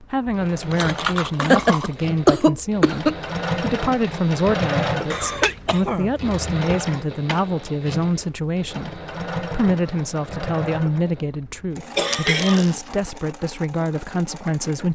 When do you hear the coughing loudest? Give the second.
2 s.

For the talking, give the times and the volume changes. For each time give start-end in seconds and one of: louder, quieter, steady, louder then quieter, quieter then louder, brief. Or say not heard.
0.0-14.9 steady.